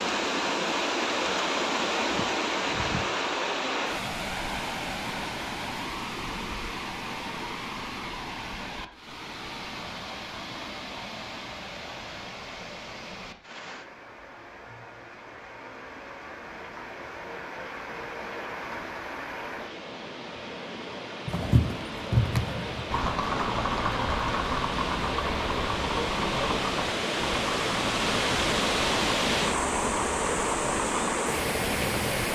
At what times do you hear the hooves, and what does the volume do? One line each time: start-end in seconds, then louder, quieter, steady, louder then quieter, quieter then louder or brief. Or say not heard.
21.2-31.2 quieter.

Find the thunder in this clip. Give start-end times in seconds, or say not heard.
not heard.